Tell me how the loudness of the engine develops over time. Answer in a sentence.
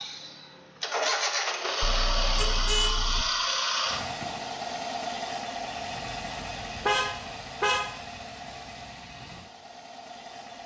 The volume of the engine goes down.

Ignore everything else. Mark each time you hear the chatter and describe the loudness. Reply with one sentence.
You can't hear the chatter here.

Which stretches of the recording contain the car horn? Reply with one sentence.
You can hear the car horn from 1.8 to 3.2 s and from 6.8 to 8.0 s.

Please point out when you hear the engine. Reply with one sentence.
You can hear the engine from 0.0 to 10.6 s.